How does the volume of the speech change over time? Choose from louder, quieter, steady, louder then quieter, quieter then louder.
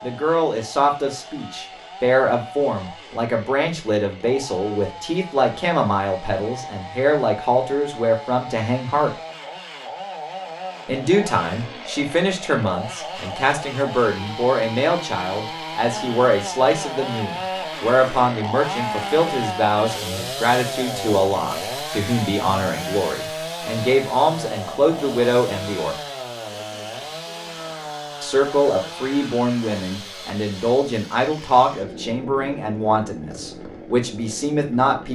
steady.